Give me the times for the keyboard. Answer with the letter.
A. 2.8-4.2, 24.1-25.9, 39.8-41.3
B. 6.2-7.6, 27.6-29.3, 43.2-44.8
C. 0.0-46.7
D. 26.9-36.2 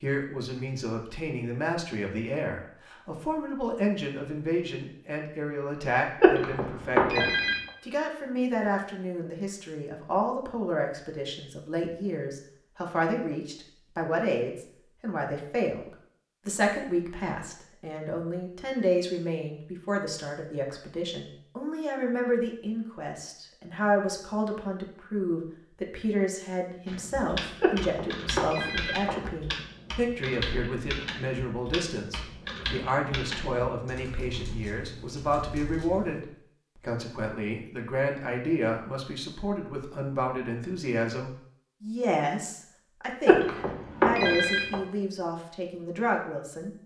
D.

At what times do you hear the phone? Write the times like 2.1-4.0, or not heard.
6.2-7.6, 27.6-29.3, 43.2-44.8.